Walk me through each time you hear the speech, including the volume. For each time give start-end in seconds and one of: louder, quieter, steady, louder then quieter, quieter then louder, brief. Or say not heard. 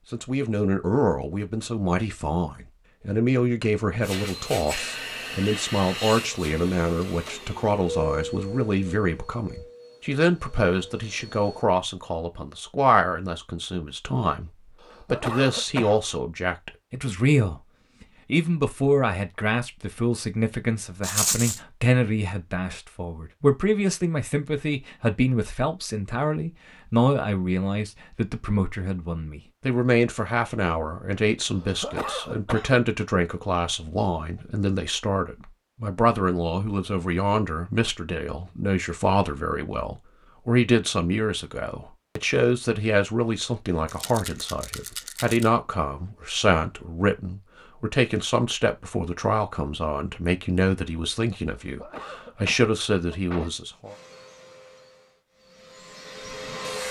0.1-17.6 steady
18.3-54.0 steady.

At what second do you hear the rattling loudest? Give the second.
21 s.